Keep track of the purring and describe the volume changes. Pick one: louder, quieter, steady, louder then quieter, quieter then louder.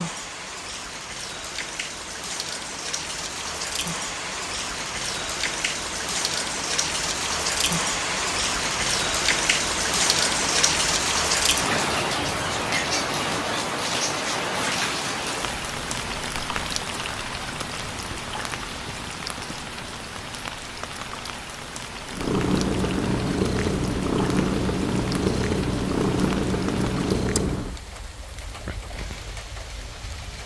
steady.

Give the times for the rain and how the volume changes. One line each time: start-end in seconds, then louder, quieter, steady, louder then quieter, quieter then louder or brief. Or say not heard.
0.0-30.4 louder then quieter.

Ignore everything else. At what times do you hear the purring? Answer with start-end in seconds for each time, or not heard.
22.1-27.8.